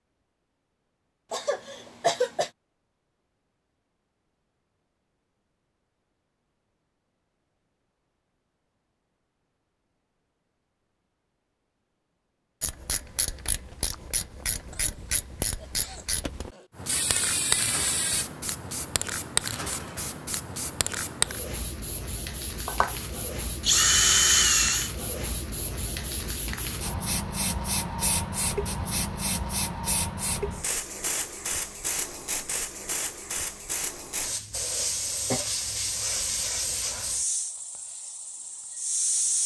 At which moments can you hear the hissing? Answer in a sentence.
The hissing can be heard from 16.8 to 39.4 s.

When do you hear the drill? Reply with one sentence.
You can hear the drill from 22.6 to 24.9 s.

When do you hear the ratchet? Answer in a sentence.
The ratchet can be heard from 12.6 to 18.2 s.